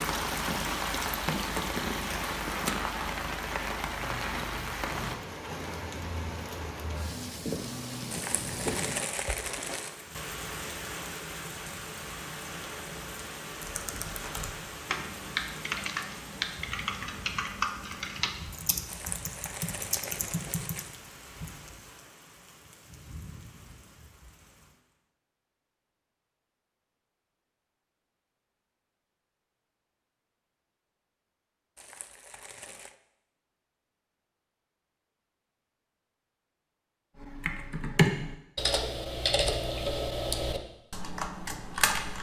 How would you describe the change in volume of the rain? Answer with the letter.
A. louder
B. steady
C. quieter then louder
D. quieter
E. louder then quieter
D.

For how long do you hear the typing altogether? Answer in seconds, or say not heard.
12 s.